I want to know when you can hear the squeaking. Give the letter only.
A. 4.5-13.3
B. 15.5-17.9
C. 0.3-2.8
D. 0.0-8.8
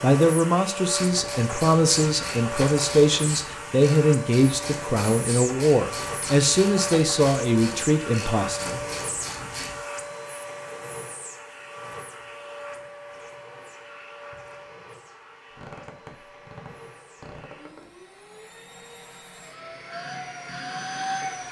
B.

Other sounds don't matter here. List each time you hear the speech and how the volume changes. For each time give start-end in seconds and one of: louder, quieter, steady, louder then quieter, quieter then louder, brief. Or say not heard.
0.0-8.8 steady.